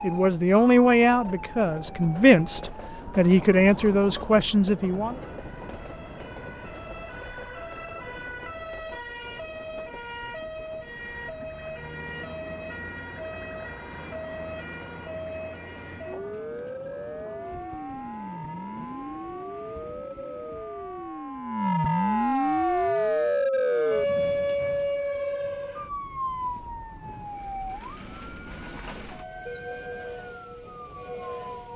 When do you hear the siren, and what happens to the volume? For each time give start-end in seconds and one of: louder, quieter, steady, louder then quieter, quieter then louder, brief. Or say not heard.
0.0-31.7 louder then quieter.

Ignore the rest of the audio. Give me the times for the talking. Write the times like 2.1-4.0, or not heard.
0.0-5.2.